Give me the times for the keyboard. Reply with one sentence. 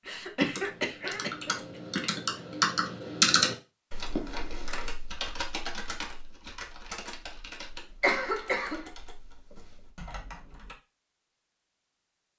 You can hear the keyboard from 0.4 to 10.8 s.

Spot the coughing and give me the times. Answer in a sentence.
You can hear the coughing from 0.1 to 1.6 s and from 8.0 to 8.8 s.